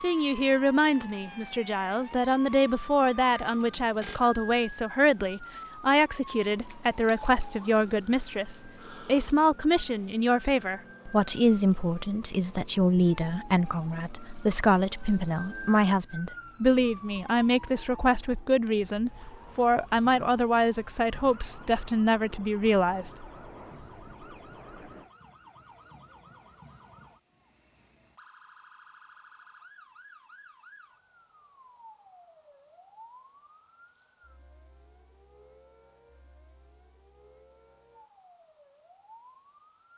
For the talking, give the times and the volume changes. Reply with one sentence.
You can hear the talking from 0.0 to 23.1 s, at a steady volume.